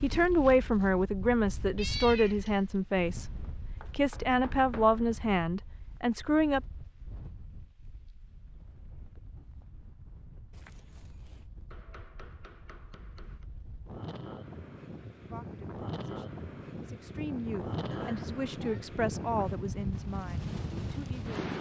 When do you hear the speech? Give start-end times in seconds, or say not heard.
0.0-6.6, 15.2-21.4.